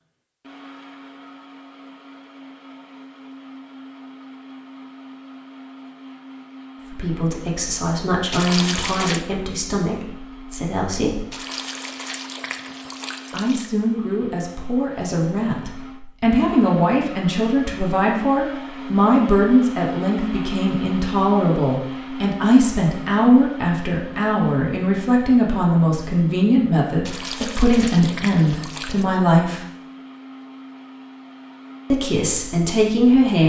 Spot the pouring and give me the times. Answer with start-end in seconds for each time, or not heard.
8.3-9.2, 11.3-13.7, 27.1-29.1.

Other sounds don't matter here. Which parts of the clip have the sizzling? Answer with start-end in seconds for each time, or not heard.
not heard.